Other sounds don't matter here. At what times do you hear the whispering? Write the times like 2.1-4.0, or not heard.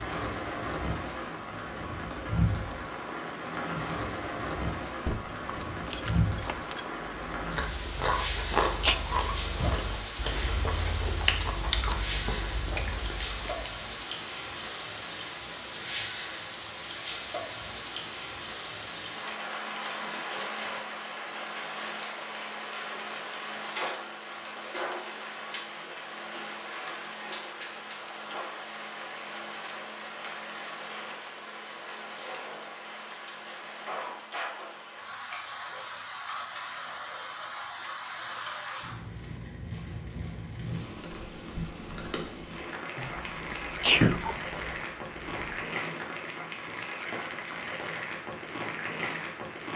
not heard.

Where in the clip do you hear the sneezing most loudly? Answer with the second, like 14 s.
44 s.